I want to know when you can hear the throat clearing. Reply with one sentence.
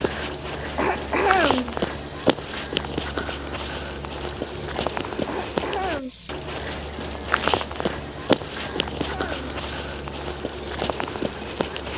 You can hear the throat clearing from 0.8 to 1.8 s, from 5.2 to 6.1 s and from 8.6 to 9.3 s.